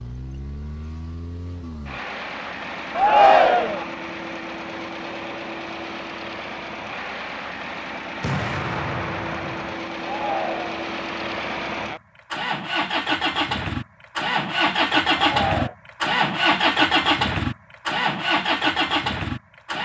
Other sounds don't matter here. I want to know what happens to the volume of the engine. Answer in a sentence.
The loudness of the engine goes up.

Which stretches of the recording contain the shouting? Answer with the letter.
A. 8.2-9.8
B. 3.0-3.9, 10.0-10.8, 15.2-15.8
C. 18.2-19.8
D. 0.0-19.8
B.